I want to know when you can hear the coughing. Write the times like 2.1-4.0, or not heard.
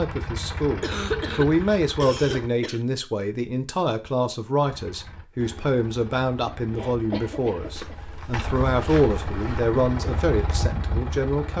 0.8-2.8, 6.5-8.0.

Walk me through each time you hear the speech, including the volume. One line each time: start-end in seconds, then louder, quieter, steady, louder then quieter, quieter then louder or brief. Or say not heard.
0.0-11.5 steady.